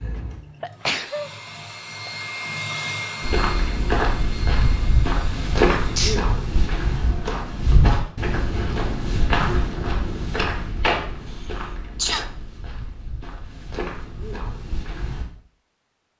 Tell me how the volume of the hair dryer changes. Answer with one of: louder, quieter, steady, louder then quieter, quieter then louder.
louder then quieter.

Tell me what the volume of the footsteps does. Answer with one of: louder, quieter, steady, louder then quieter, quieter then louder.
quieter.